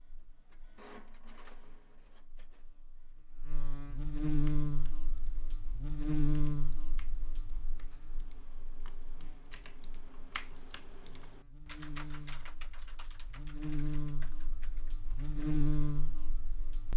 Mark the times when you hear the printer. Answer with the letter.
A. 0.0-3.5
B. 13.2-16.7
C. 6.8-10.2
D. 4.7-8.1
A.